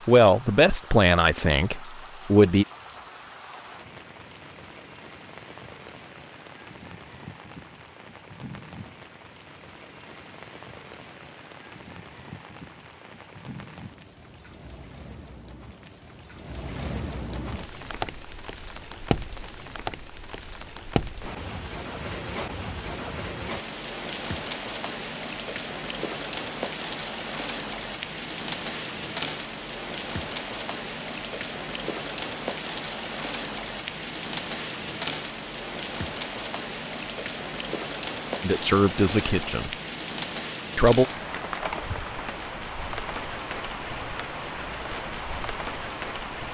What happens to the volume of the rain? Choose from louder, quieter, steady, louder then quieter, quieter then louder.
louder.